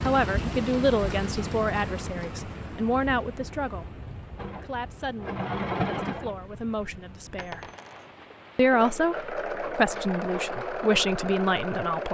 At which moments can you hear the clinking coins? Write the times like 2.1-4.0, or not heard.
7.3-8.1.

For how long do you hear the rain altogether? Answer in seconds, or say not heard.
9 s.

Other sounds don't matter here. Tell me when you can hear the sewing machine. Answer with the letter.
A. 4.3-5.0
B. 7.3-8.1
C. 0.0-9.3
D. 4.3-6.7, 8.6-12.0
D.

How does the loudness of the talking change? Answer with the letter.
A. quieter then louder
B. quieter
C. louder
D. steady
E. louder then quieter
A.